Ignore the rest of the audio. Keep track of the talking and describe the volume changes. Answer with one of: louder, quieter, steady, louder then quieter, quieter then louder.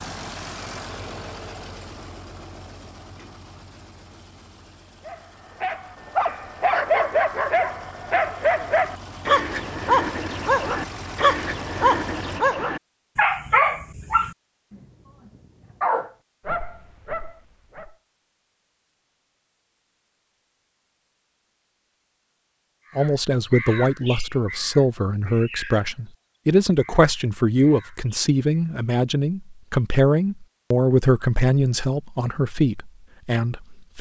steady.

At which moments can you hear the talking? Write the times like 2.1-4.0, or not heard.
22.9-33.9.